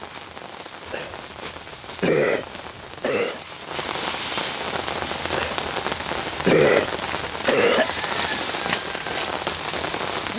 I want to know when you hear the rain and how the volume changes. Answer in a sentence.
The rain can be heard from 0.0 to 10.3 s, getting louder.